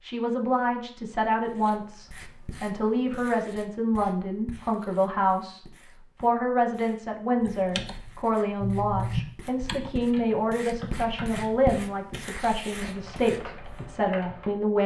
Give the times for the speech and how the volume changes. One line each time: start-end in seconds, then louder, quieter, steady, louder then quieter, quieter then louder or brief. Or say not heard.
0.0-14.8 steady.